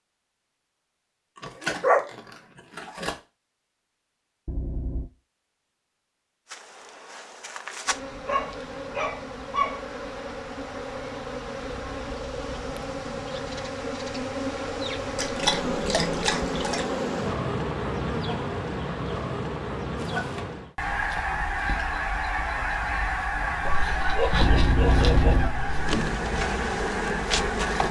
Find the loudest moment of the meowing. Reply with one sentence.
The loudest moment of the meowing is at 25 seconds.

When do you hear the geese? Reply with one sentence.
The geese can be heard from 19.9 to 27.8 s.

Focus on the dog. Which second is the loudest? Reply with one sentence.
The volume of the dog peaks at 2 seconds.